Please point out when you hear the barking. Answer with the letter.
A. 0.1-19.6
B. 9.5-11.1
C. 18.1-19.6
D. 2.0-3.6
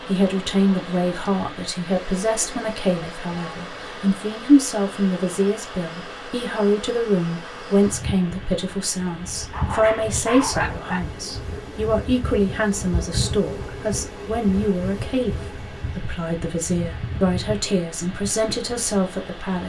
B.